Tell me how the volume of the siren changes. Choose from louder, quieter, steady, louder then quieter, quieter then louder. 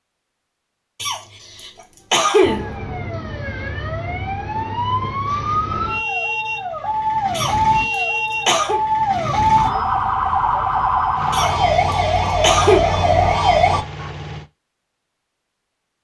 louder.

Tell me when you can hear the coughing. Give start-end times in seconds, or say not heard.
1.0-2.6, 7.3-8.8, 11.3-12.8.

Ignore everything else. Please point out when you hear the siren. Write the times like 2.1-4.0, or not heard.
2.4-13.8.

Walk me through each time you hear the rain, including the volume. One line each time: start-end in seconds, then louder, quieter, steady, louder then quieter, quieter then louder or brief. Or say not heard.
not heard.